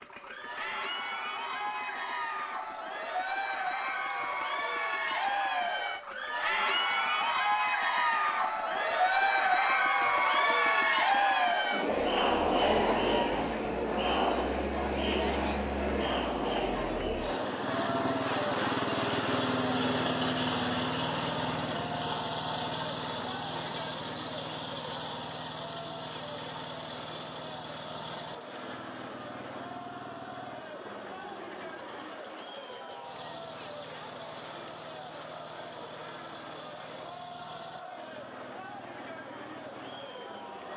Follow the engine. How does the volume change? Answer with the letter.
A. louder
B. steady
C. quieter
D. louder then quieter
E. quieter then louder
D.